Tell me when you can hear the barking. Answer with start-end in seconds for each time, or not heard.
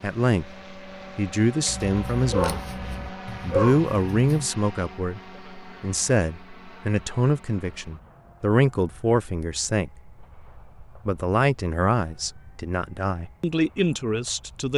1.6-4.5.